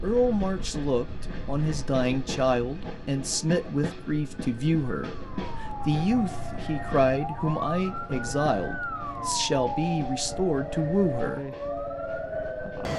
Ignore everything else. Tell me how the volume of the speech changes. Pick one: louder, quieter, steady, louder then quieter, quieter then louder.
steady.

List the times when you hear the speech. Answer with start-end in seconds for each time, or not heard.
0.0-11.4.